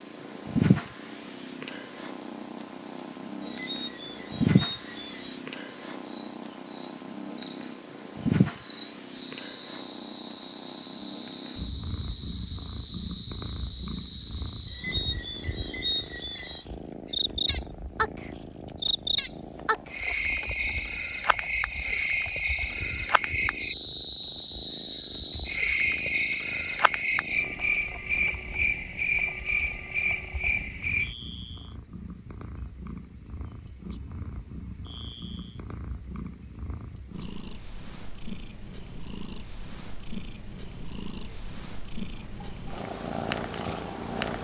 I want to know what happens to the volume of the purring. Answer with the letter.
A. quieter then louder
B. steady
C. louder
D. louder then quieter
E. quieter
A.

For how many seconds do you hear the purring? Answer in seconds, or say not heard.
44 s.